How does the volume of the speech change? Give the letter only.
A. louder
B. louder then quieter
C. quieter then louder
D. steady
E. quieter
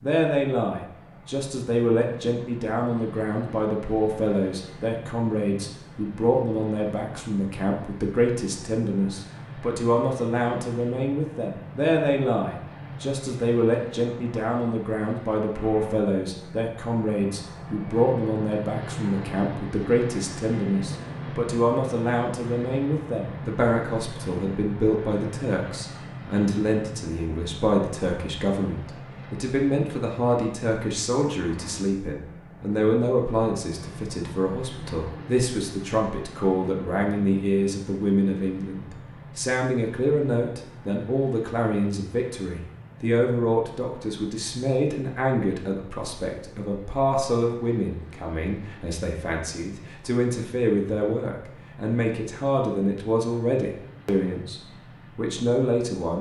D.